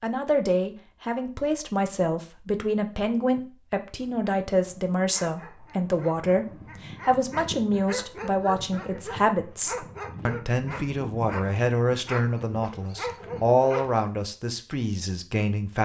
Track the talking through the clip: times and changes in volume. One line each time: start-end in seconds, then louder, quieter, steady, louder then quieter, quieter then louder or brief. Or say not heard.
0.0-15.7 steady.